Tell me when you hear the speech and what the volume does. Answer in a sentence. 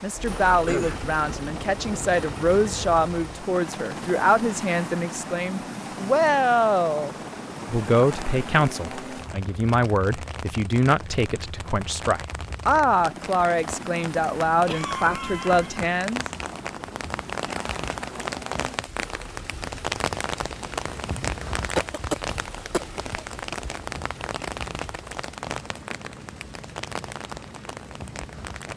The speech can be heard from 0.0 to 16.2 s, at a steady volume.